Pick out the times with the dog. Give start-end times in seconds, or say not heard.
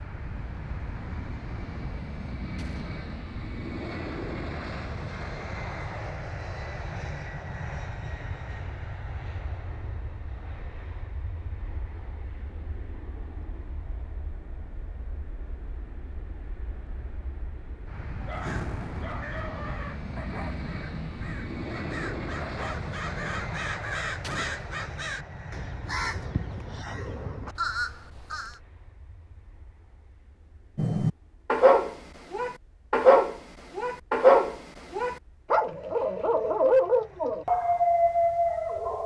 18.2-23.8, 30.8-39.0.